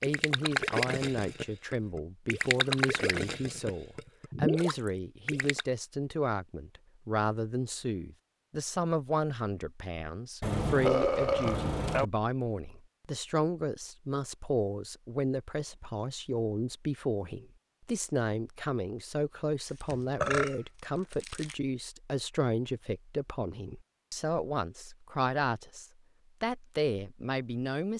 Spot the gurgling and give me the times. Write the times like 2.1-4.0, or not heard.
0.0-5.7.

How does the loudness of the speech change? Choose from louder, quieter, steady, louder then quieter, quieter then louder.
steady.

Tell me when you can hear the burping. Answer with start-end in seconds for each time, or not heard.
10.4-12.1, 19.6-21.6.